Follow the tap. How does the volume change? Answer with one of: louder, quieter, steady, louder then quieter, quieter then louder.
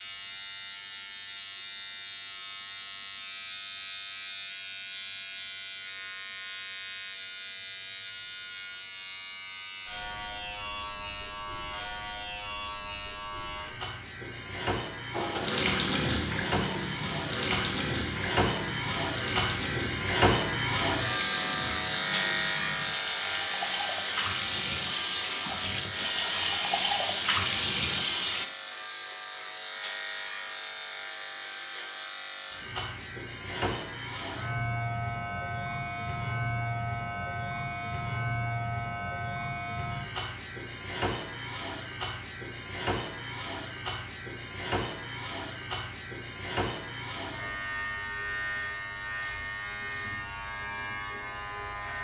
quieter then louder.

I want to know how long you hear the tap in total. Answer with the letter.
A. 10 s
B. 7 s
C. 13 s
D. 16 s
C.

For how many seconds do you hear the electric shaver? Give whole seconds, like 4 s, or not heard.
52 s.